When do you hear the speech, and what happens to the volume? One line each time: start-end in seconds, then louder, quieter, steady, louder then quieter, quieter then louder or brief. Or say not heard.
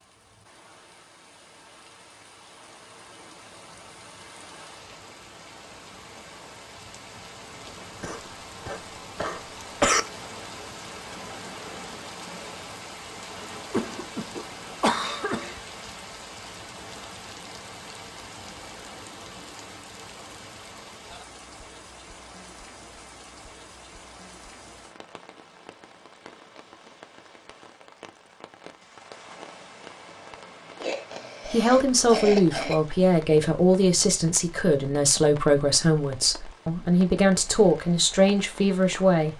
31.4-39.3 steady.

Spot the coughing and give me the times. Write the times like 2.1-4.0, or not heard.
8.0-10.0, 13.7-15.6, 30.8-32.8.